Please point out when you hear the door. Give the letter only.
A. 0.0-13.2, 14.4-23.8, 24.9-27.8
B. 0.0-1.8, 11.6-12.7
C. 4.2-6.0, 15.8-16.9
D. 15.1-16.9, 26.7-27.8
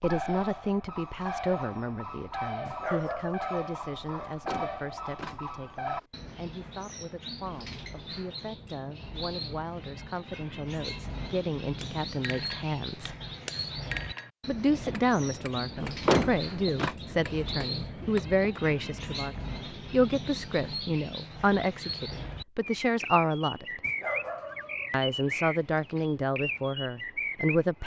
C.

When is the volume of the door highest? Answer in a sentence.
The volume of the door peaks at 16 seconds.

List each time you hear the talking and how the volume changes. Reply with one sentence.
You can hear the talking from 0.0 to 13.2 s, getting quieter then louder; from 14.4 to 23.8 s, at a steady volume; and briefly from 24.9 to 27.8 s.